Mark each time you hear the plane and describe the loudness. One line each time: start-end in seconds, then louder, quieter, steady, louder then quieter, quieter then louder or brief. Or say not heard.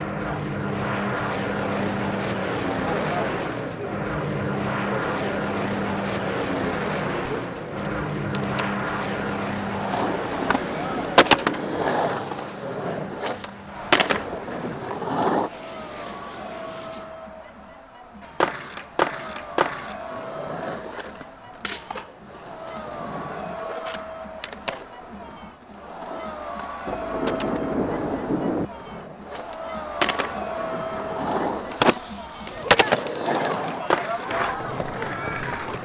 0.0-17.2 quieter.